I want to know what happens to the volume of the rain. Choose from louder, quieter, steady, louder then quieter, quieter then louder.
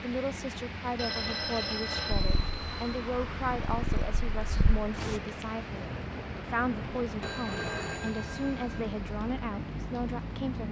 steady.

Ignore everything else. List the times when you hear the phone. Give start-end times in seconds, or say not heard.
0.9-3.0, 7.2-8.8.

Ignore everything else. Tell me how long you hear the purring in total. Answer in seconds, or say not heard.
3 s.